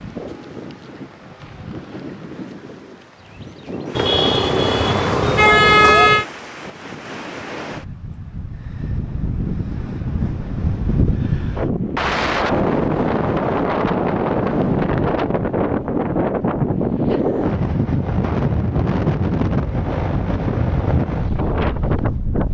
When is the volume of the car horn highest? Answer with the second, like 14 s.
6 s.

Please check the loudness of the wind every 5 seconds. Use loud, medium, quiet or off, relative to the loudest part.
quiet, medium, loud, loud, loud.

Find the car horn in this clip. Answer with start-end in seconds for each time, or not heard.
4.0-6.2.